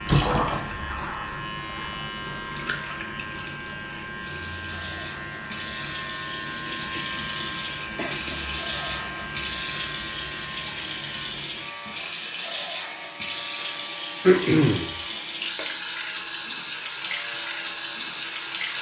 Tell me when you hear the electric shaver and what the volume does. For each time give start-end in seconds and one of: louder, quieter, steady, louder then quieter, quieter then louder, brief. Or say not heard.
0.0-18.7 quieter.